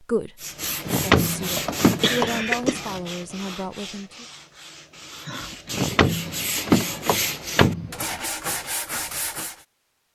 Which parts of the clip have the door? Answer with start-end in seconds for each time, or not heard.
0.8-2.3, 5.7-8.2.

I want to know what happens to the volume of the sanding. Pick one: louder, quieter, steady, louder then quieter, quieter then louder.
quieter then louder.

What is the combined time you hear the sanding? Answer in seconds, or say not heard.
9 s.